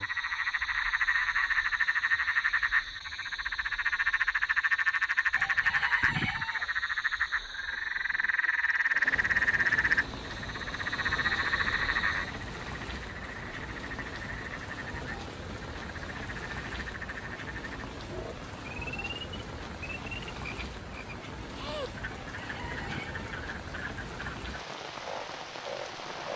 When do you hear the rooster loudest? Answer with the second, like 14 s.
6 s.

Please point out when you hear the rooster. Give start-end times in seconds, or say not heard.
5.3-6.7, 22.1-23.2.